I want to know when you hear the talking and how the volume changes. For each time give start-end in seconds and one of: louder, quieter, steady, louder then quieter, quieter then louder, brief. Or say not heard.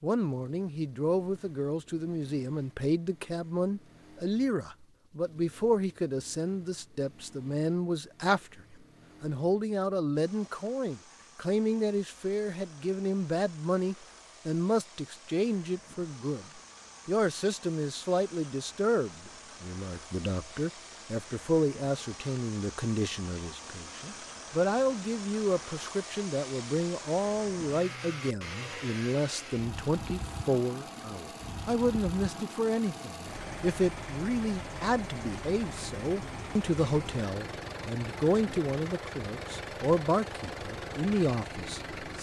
0.0-42.1 steady.